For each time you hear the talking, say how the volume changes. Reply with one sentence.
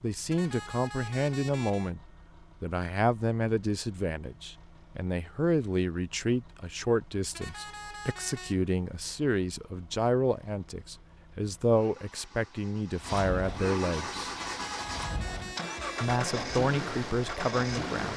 You can hear the talking briefly from 0.0 to 2.0 s; from 2.6 to 14.2 s, at a steady volume; and briefly from 16.0 to 18.1 s.